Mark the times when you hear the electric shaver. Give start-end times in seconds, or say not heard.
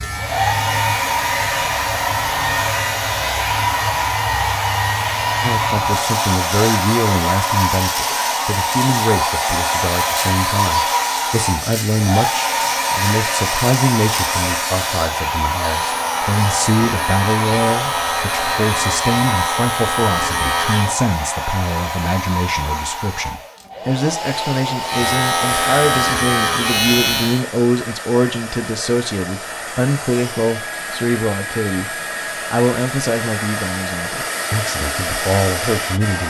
0.0-20.9, 24.8-27.4.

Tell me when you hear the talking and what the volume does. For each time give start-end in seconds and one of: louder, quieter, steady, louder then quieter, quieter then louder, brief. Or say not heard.
5.4-36.2 steady.